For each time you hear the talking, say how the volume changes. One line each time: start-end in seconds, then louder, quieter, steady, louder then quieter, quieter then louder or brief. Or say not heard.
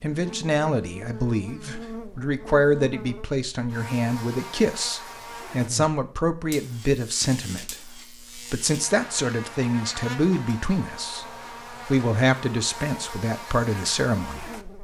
0.0-14.5 steady.